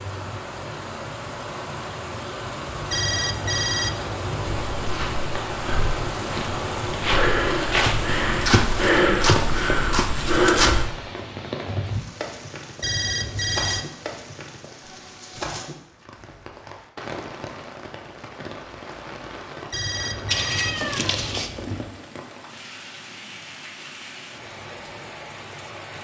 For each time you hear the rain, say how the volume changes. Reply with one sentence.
You can hear the rain from 0.0 to 25.9 s, getting quieter.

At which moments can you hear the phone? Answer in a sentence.
The phone can be heard from 2.9 to 5.0 s, from 12.8 to 13.8 s and from 19.7 to 22.0 s.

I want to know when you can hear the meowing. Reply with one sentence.
You can hear the meowing from 20.3 to 21.5 s.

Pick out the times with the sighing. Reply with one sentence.
You can't hear the sighing here.